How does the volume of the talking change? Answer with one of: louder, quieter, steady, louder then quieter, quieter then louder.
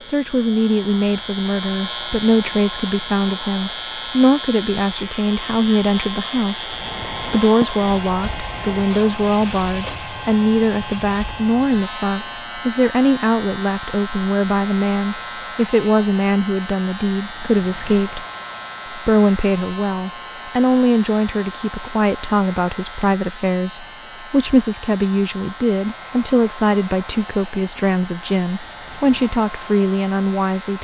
steady.